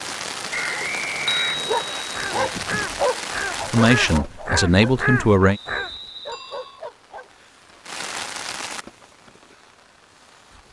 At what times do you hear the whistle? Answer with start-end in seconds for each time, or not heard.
0.5-2.0, 5.5-6.8.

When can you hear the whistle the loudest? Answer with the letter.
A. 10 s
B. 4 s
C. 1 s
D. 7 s
C.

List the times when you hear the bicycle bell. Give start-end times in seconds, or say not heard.
1.2-2.9, 6.3-6.8.